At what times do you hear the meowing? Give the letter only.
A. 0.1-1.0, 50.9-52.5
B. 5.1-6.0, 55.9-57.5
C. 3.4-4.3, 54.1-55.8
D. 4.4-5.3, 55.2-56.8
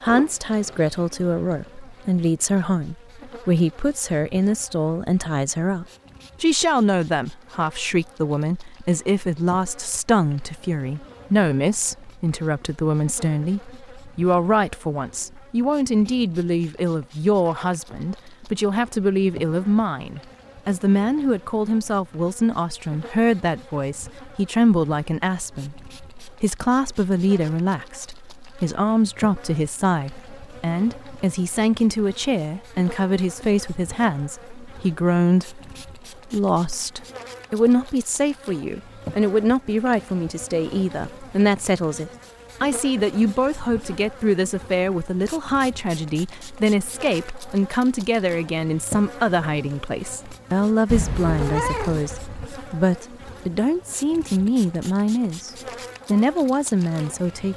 A.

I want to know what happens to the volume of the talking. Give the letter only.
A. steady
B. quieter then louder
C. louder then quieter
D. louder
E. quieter
A.